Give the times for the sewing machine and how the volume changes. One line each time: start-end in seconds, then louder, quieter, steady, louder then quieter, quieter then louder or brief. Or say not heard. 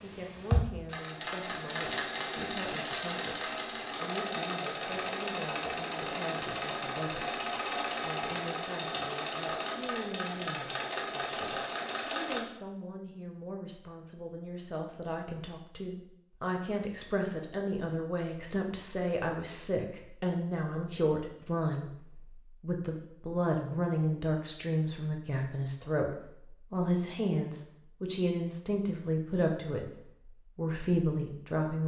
0.0-12.4 steady.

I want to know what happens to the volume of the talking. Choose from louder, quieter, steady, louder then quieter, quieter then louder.
louder.